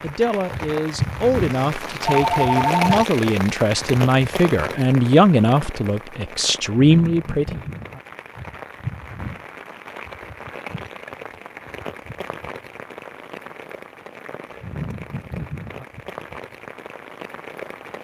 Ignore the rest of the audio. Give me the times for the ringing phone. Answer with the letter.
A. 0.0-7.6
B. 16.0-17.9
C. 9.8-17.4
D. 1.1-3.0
D.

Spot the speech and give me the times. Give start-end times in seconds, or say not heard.
0.0-7.6.